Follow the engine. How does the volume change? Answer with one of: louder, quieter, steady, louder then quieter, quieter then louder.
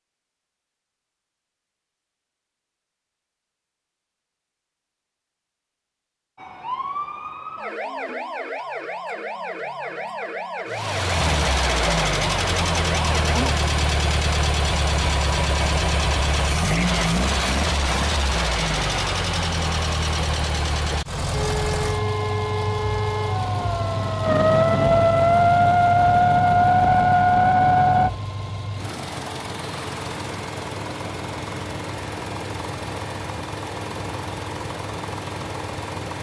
quieter.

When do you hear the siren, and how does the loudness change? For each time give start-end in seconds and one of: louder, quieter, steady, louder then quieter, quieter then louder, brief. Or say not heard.
6.3-13.6 steady
21.3-28.1 louder.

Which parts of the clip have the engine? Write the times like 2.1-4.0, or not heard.
10.7-36.1.